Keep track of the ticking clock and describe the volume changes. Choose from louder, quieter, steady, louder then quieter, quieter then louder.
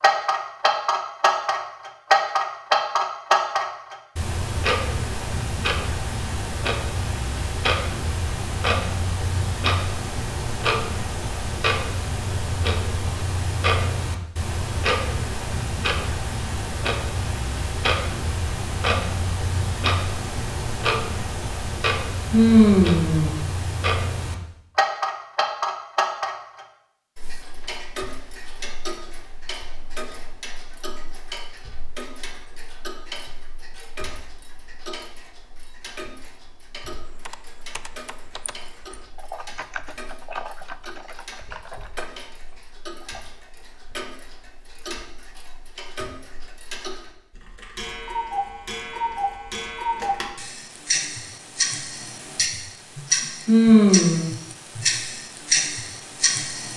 quieter then louder.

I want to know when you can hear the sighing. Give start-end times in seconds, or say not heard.
22.3-23.4, 53.5-54.2.